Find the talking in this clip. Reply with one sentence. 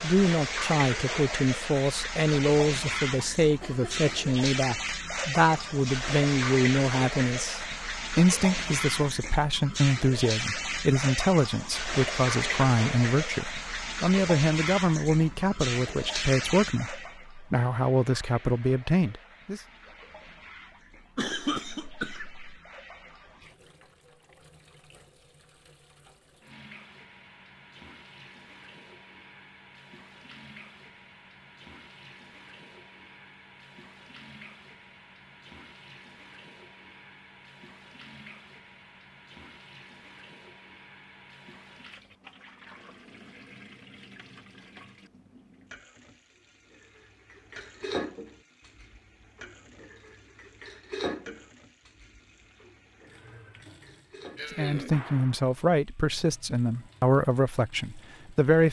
You can hear the talking from 0.0 to 19.6 s and from 54.5 to 58.6 s.